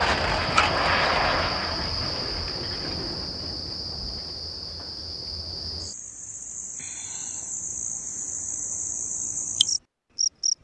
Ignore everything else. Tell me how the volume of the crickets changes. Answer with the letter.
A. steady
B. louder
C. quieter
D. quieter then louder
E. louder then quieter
D.